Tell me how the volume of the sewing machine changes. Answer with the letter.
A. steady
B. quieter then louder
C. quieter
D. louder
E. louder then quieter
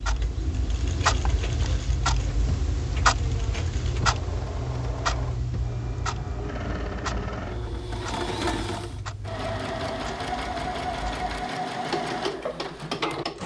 D.